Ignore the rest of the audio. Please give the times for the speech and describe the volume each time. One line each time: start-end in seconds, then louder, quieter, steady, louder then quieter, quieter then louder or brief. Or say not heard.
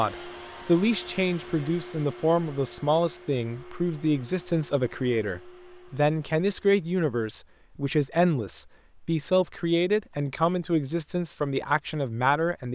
0.0-12.6 steady.